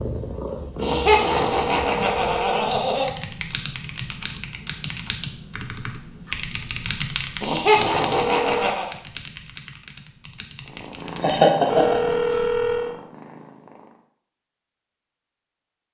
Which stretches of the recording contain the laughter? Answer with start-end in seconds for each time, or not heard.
0.8-3.1, 7.4-8.9, 11.2-12.2.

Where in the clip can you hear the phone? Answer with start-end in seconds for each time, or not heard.
0.8-2.8, 8.1-8.7, 11.7-12.9.